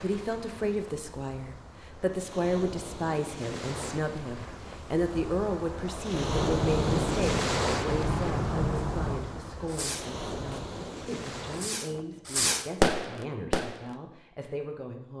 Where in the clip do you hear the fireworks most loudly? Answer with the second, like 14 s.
13 s.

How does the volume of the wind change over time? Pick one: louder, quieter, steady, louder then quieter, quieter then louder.
louder then quieter.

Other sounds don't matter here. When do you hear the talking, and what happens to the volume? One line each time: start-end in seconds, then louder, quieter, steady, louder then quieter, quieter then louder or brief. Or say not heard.
0.0-15.1 quieter.